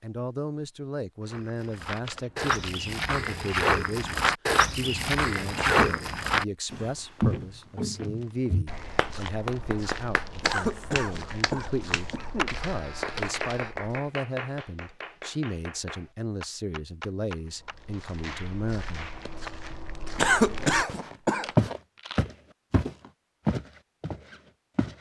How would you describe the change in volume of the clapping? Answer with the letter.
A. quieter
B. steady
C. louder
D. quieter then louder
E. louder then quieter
A.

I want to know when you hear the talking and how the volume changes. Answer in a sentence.
You can hear the talking from 0.0 to 19.1 s, at a steady volume.